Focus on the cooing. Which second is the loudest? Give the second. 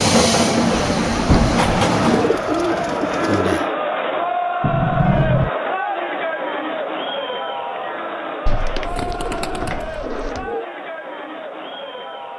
3 s.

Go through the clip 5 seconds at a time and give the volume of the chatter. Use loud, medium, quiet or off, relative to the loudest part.
loud, loud, medium.